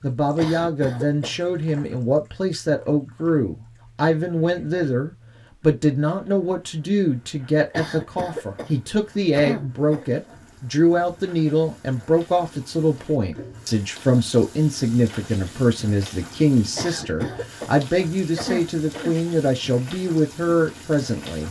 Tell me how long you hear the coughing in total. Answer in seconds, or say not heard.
6 s.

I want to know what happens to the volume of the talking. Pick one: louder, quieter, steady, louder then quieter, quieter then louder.
steady.